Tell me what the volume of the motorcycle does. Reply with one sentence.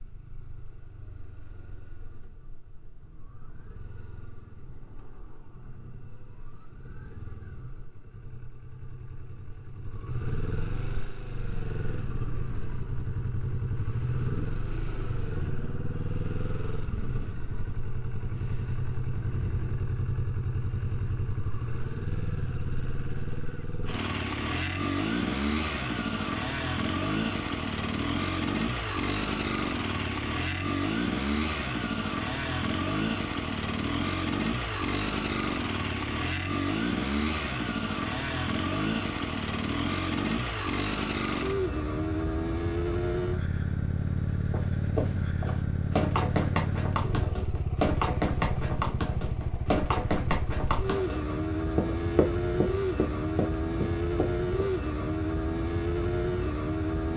The volume of the motorcycle goes up.